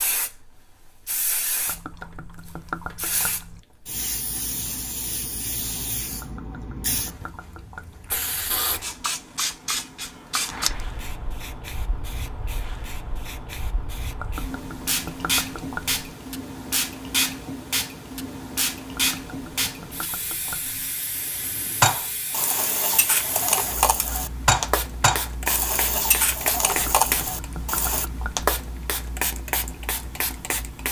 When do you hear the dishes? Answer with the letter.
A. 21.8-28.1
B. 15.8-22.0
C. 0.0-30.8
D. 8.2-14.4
A.